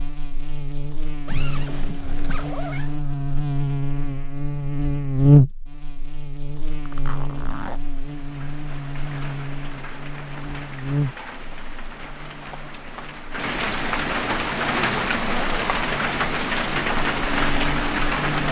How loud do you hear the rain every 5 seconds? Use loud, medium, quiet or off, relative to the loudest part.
off, quiet, medium, loud.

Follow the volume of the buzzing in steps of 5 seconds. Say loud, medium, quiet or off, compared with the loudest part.
medium, loud, medium, medium.